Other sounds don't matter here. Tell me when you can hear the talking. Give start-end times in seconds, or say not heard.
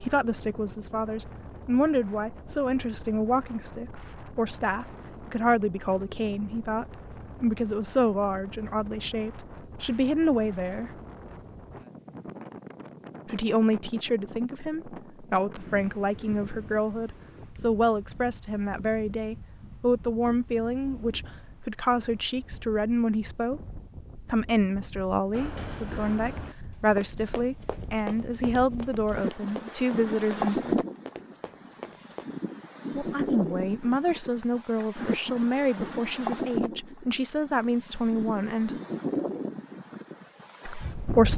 0.0-10.9, 13.2-23.6, 24.2-30.8, 33.0-38.8, 40.6-41.3.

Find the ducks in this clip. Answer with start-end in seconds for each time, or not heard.
not heard.